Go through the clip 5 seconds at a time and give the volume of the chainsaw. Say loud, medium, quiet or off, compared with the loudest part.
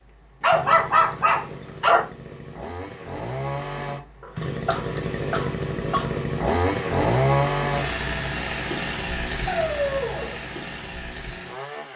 medium, loud, medium.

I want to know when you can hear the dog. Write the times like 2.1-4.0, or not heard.
0.4-2.0, 4.2-6.2, 9.4-10.4.